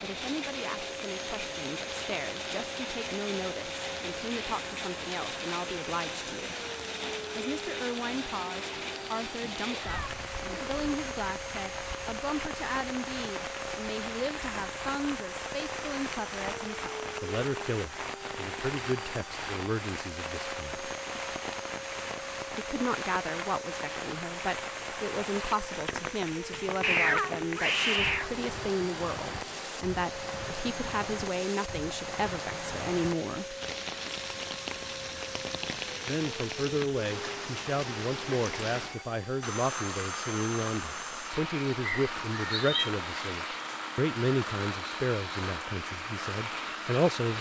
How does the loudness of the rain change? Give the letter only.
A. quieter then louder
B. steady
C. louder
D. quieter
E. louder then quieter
B.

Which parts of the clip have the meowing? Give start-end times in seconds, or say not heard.
9.4-10.9, 26.8-28.3, 42.0-42.9.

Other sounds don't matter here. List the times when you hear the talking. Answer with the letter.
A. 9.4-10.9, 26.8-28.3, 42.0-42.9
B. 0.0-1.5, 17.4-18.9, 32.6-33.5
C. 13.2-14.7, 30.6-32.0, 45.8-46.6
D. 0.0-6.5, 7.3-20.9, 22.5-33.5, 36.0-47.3
D.